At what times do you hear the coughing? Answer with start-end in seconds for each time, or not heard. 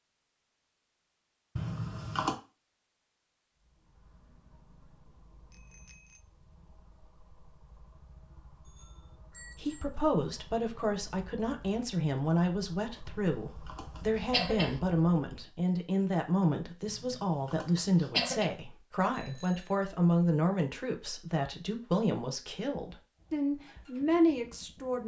1.6-2.4, 13.1-14.8, 16.9-18.5.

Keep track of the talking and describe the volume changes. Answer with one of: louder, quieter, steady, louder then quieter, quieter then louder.
steady.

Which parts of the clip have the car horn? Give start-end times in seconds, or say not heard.
not heard.